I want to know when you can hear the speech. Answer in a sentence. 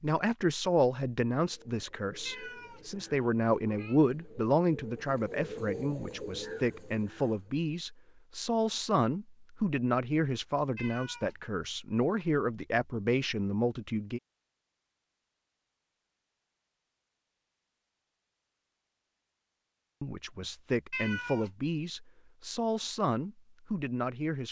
The speech can be heard from 0.0 to 14.2 s and from 20.0 to 24.4 s.